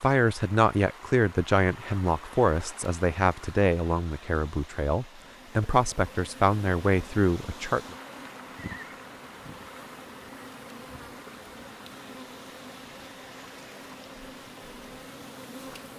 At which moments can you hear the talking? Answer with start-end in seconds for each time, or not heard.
0.0-8.0.